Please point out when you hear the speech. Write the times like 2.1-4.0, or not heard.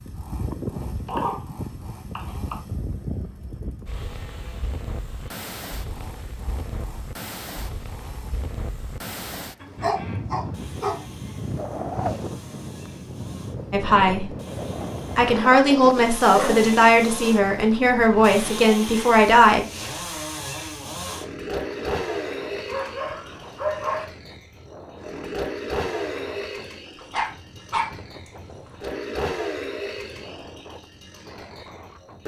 13.7-14.3, 15.2-19.6.